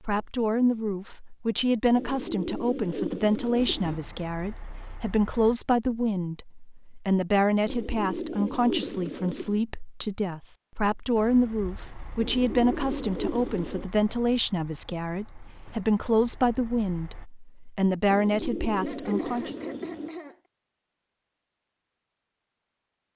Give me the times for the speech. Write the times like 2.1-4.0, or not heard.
0.1-19.6.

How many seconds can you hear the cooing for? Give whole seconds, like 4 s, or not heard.
8 s.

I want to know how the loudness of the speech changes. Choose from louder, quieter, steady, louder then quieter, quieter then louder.
steady.